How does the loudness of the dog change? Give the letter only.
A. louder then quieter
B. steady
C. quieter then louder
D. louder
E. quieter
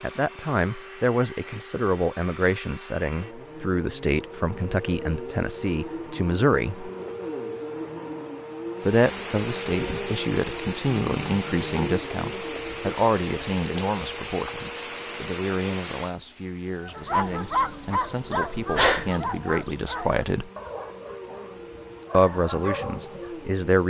C.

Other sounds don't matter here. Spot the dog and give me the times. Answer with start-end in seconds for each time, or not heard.
16.8-23.6.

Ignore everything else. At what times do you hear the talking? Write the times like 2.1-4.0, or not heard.
0.0-6.9, 8.8-20.5, 22.1-23.8.